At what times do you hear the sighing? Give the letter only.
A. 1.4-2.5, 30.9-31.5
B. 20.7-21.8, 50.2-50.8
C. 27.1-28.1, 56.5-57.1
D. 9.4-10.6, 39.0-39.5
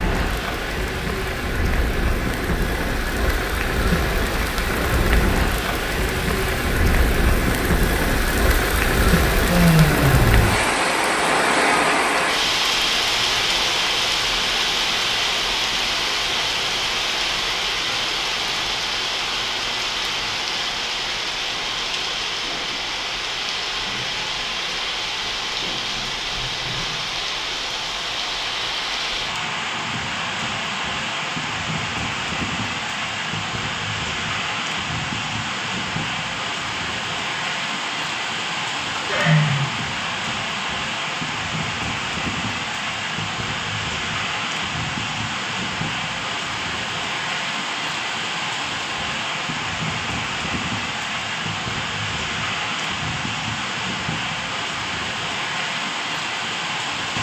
D.